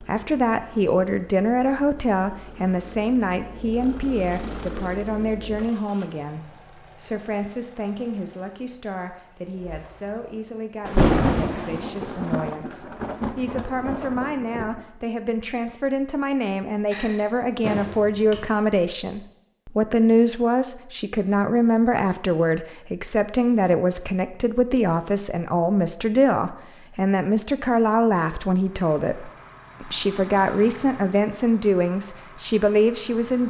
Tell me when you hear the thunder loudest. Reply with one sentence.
The loudest moment of the thunder is at 11 seconds.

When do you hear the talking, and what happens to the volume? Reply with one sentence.
You can hear the talking from 0.0 to 33.4 s, getting quieter then louder.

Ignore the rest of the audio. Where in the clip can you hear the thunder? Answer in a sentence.
You can hear the thunder from 10.8 to 14.8 s.